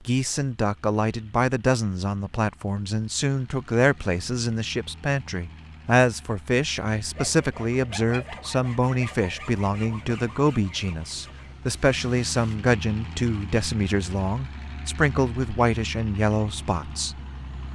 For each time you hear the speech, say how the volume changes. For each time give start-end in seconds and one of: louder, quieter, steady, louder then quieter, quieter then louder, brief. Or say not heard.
0.1-17.1 steady.